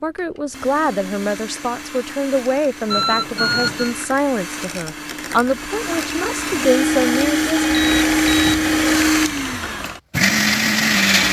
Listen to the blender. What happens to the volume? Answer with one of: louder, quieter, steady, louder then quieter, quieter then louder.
louder.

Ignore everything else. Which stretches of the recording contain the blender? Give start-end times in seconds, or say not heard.
0.0-11.2.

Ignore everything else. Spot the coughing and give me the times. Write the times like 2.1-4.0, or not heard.
not heard.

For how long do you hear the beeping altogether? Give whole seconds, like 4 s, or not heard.
2 s.